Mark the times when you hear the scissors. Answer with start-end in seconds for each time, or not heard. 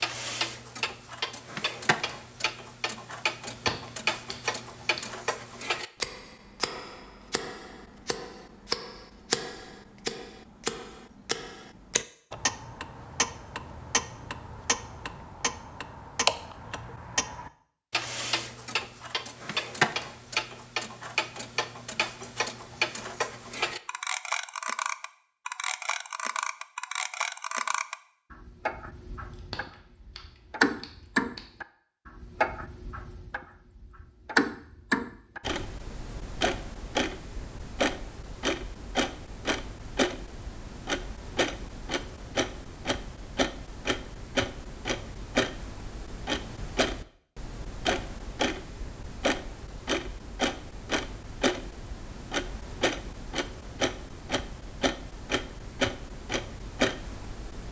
3.5-5.0, 29.3-31.4.